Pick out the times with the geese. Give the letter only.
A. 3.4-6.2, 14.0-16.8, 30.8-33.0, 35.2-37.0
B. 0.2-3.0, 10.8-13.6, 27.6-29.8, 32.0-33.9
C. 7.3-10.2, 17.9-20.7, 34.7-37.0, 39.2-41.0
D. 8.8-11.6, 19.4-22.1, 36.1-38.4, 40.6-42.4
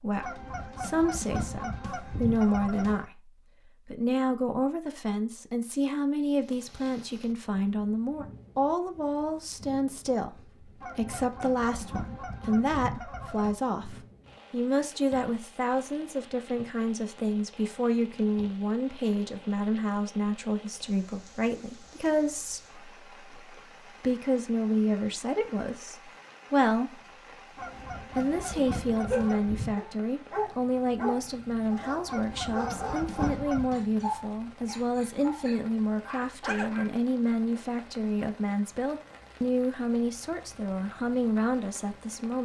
B.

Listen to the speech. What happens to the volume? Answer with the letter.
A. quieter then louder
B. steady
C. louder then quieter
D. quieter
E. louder
B.